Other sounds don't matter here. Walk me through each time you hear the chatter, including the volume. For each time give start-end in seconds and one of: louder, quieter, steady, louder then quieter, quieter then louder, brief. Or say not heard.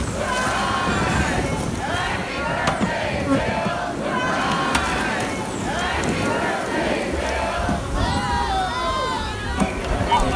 0.0-10.3 steady.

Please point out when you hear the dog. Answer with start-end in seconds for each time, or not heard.
not heard.